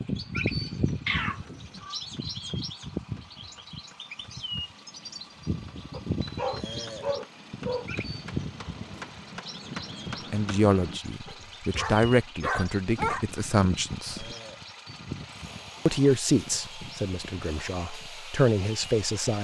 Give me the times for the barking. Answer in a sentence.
You can hear the barking from 5.9 to 7.9 s and from 11.2 to 13.2 s.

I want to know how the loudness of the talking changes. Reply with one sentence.
The volume of the talking goes down, then up.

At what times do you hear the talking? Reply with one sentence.
You can hear the talking from 10.3 to 14.3 s and from 15.8 to 19.4 s.